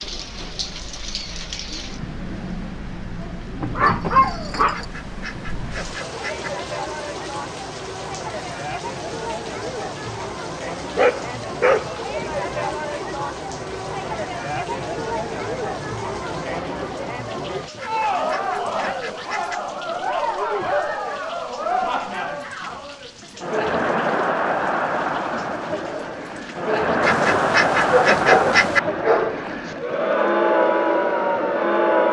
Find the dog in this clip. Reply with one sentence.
The dog can be heard from 3.6 to 4.8 s, from 10.9 to 12.2 s and from 27.8 to 29.7 s.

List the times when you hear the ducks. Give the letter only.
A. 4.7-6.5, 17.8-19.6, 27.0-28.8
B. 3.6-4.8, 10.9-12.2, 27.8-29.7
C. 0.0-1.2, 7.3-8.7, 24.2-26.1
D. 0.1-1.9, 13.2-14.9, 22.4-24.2
A.